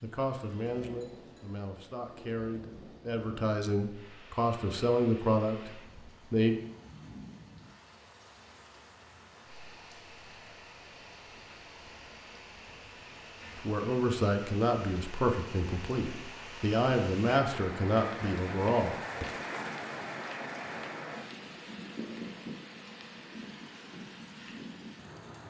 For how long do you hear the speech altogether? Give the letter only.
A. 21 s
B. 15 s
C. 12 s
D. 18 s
C.